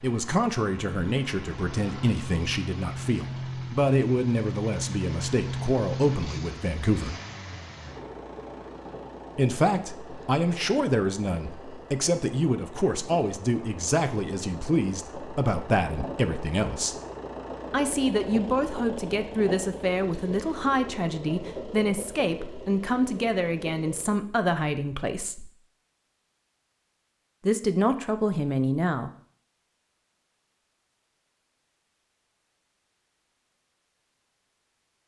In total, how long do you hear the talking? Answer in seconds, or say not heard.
24 s.